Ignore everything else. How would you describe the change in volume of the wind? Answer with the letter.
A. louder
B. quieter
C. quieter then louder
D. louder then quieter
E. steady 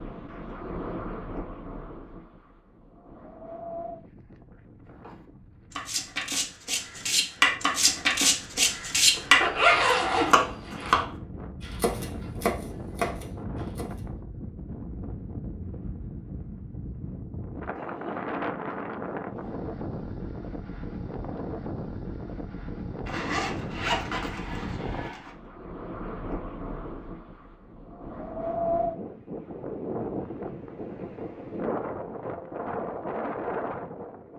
A.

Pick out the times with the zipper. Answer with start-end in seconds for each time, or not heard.
9.2-11.1, 23.1-25.3.